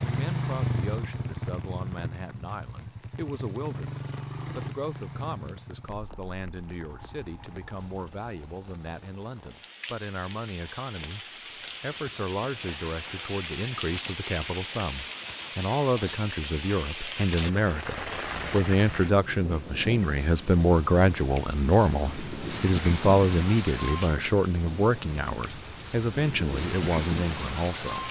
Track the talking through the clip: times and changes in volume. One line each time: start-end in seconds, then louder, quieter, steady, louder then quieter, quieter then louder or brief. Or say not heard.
0.0-28.0 louder.